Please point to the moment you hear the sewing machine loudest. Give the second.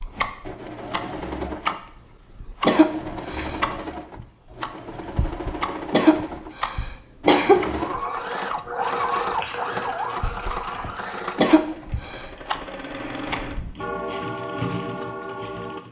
9 s.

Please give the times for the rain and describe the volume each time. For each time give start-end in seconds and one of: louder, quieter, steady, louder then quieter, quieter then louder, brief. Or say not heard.
not heard.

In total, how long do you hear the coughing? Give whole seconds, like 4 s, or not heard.
4 s.